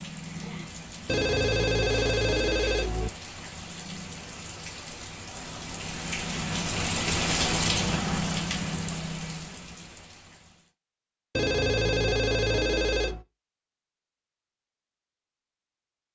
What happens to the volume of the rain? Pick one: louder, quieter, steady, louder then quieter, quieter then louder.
louder then quieter.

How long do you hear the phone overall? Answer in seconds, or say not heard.
4 s.